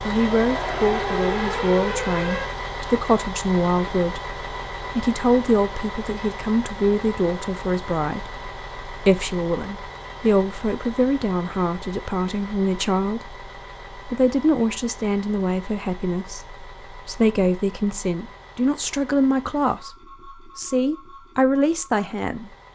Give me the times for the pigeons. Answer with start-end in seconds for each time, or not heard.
not heard.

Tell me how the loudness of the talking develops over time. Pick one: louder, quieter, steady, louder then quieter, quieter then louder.
steady.